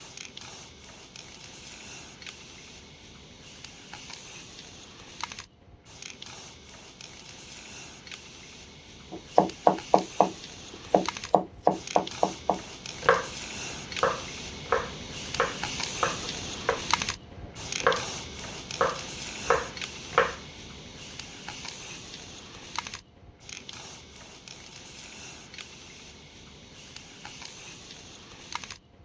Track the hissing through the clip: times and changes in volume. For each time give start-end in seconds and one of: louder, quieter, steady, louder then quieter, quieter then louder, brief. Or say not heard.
0.0-28.9 louder then quieter.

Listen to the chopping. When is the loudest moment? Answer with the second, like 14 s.
10 s.